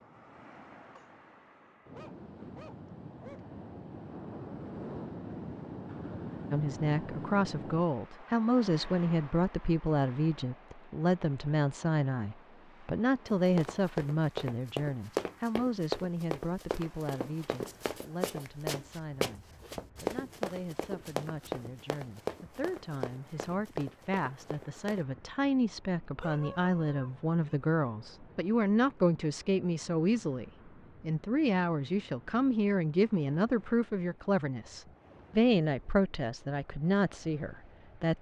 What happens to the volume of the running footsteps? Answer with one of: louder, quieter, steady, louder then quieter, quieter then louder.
quieter.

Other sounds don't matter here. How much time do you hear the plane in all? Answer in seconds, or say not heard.
not heard.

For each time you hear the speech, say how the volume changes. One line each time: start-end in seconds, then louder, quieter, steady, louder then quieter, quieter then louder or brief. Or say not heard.
6.5-38.1 quieter then louder.